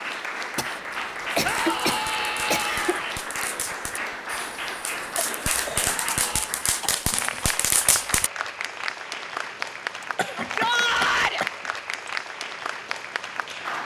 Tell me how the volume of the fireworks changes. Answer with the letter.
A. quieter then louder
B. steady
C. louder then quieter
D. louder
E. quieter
D.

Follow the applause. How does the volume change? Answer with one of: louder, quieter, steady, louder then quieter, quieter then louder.
steady.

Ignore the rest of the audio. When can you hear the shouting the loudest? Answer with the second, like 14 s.
11 s.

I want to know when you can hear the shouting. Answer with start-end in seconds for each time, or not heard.
1.4-3.0, 5.8-6.5, 10.3-11.4.